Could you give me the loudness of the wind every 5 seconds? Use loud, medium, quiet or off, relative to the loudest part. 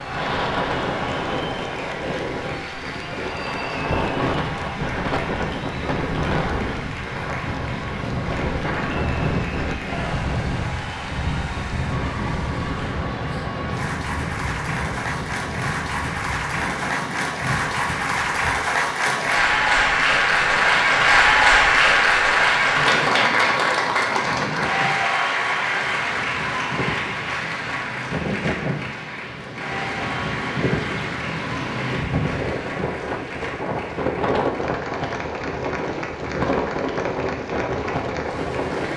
loud, loud, loud, medium, medium, medium, loud, loud.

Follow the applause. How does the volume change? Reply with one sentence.
The volume of the applause goes up, then down.